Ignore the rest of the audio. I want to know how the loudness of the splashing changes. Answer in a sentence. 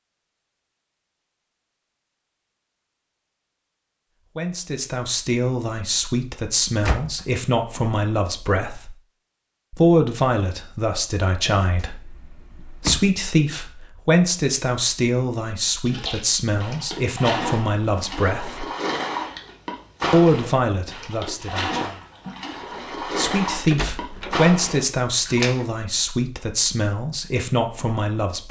The volume of the splashing stays about the same.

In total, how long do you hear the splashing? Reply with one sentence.
You can hear the splashing for 10 seconds altogether.